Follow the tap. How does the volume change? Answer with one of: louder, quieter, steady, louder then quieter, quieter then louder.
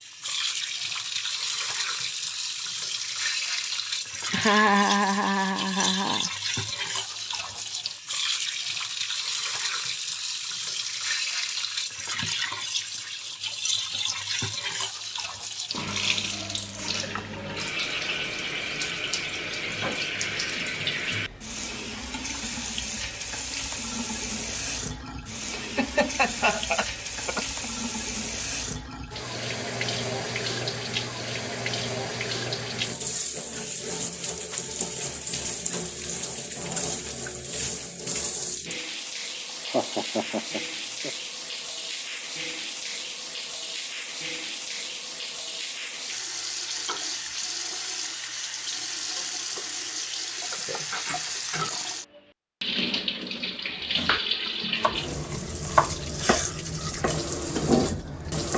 steady.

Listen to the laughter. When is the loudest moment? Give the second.
5 s.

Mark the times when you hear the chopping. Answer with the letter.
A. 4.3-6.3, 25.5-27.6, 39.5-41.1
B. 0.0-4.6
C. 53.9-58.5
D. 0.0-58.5
C.